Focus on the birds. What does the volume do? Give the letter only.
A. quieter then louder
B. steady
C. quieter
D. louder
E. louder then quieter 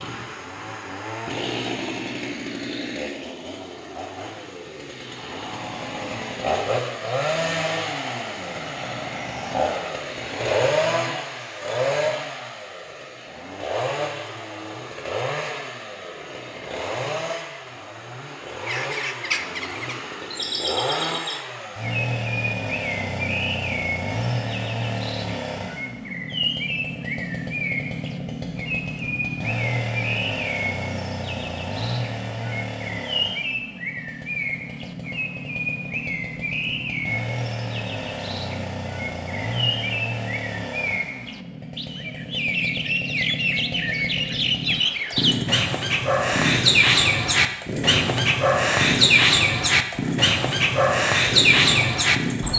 D.